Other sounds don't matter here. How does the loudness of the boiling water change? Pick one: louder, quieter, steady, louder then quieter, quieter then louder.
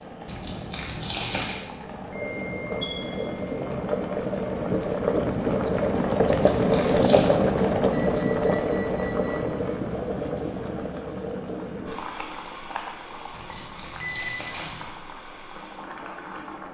louder then quieter.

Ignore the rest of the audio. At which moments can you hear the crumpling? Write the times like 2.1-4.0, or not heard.
0.2-1.6, 6.2-7.3, 13.3-14.9.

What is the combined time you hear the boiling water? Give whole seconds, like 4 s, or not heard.
17 s.